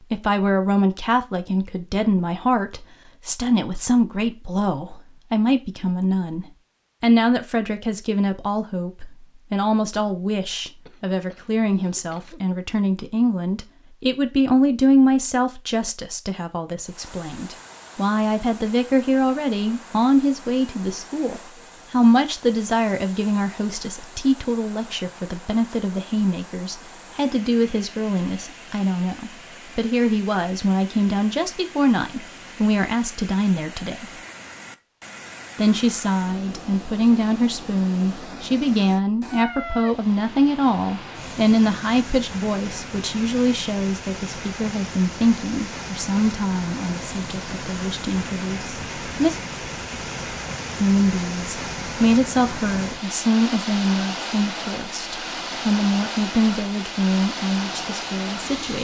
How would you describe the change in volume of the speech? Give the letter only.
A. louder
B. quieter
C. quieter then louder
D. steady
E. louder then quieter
D.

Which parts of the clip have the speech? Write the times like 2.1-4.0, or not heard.
0.1-34.1, 35.5-49.4, 50.8-58.7.